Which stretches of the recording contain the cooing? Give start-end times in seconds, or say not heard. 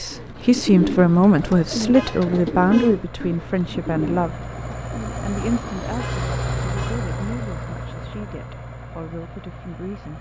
0.1-5.9.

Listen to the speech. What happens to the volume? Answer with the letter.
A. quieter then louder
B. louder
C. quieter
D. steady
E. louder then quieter
C.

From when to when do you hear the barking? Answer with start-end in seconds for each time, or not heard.
not heard.